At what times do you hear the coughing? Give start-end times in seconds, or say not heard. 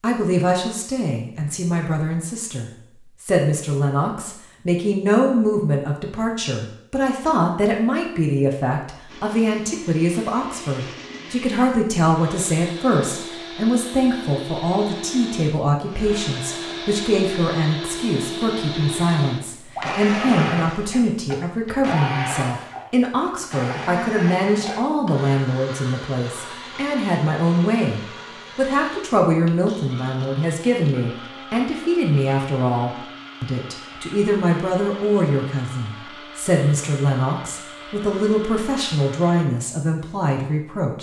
not heard.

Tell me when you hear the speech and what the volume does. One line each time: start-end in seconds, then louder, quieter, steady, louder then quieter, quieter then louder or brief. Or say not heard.
0.0-40.9 steady.